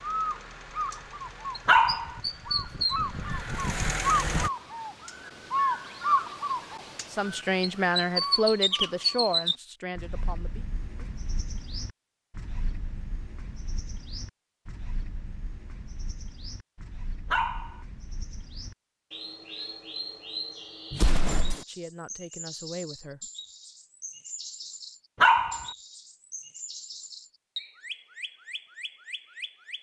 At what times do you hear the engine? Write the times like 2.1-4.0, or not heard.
0.0-4.5.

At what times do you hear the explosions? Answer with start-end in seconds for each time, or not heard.
20.9-21.6.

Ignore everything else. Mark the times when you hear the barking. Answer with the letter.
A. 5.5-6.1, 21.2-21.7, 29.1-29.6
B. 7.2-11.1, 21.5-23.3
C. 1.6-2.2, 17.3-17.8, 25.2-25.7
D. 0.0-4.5
C.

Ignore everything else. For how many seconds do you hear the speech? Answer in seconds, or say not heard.
6 s.